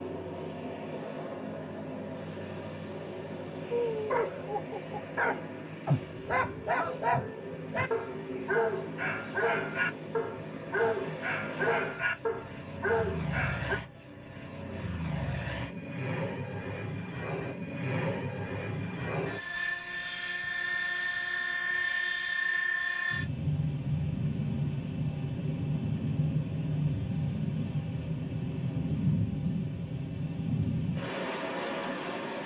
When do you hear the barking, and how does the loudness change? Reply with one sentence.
The barking can be heard from 3.7 to 13.8 s, at a steady volume.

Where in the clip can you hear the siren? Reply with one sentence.
You can't hear the siren here.